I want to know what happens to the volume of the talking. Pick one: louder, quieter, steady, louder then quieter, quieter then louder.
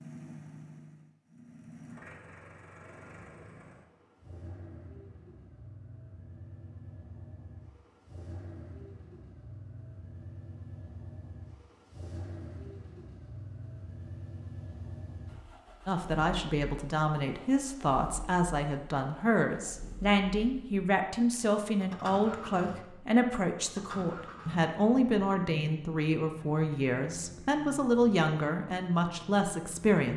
steady.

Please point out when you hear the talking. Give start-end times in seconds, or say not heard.
15.8-30.1.